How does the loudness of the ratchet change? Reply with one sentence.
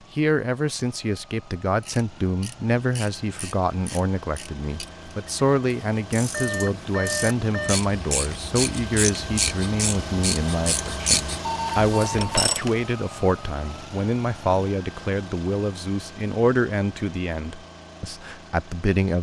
The volume of the ratchet goes up.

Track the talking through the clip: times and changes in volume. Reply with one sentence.
You can hear the talking from 0.1 to 19.1 s, at a steady volume.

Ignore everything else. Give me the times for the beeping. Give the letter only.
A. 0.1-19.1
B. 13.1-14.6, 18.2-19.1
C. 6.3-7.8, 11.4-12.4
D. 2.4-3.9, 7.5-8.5
C.